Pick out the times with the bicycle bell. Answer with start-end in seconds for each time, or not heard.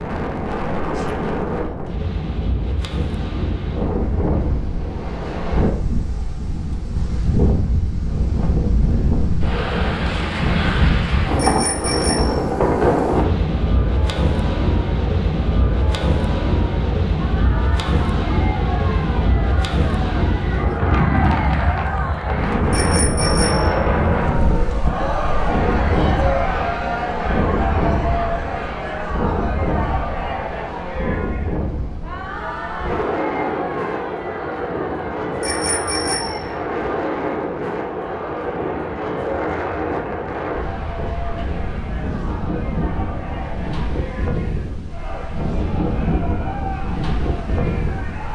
11.3-12.4, 22.7-23.8, 35.4-36.5.